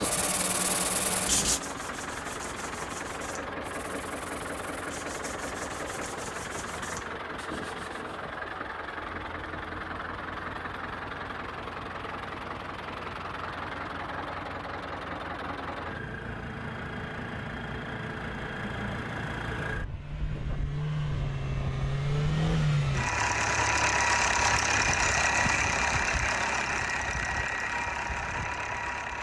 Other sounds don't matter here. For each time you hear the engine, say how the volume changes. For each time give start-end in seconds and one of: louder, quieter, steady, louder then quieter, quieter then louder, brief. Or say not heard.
0.0-29.1 louder.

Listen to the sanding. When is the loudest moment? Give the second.
1 s.